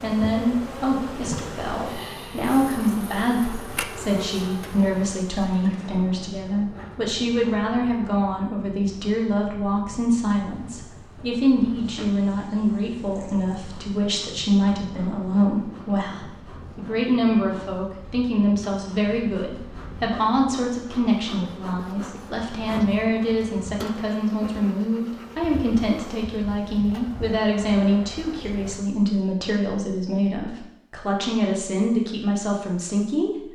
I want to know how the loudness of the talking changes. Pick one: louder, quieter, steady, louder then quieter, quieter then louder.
steady.